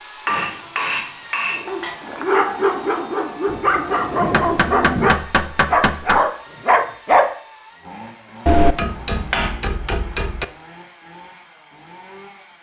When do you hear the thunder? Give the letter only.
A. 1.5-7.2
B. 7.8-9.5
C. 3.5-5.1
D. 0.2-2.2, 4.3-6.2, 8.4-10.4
C.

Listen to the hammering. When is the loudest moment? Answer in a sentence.
The loudest moment of the hammering is at 9 seconds.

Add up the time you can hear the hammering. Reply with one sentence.
You can hear the hammering for 6 seconds altogether.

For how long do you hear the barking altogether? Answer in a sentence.
The barking can be heard for 6 seconds in total.